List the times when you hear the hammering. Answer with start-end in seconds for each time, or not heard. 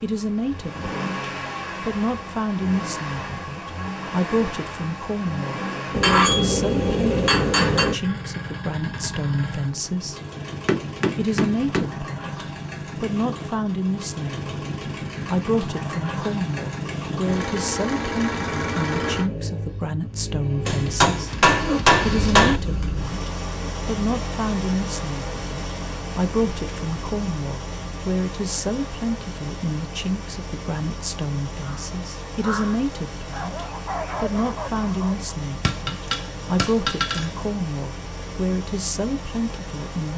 5.9-8.0, 10.7-11.9, 20.6-22.6, 35.6-37.3.